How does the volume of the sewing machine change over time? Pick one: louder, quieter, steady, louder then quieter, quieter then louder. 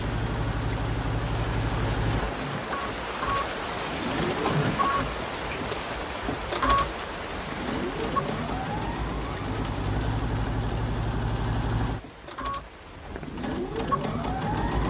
steady.